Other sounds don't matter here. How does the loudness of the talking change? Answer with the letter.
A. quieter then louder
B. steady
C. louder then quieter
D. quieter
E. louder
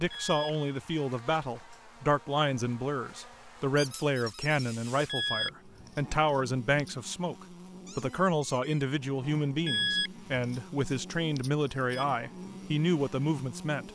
B.